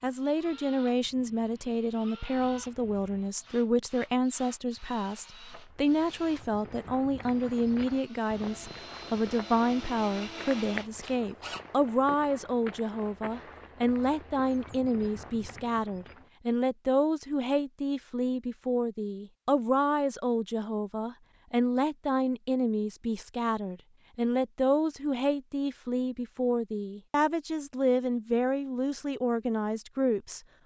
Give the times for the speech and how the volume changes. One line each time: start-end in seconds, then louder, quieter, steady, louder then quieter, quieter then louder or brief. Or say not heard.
0.0-30.4 steady.